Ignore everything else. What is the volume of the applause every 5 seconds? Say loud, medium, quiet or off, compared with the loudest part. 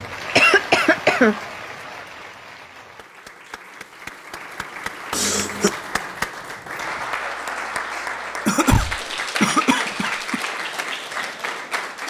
medium, loud, loud.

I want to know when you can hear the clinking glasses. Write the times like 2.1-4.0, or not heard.
not heard.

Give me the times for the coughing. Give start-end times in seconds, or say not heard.
0.3-1.4, 5.1-5.8, 8.4-10.4.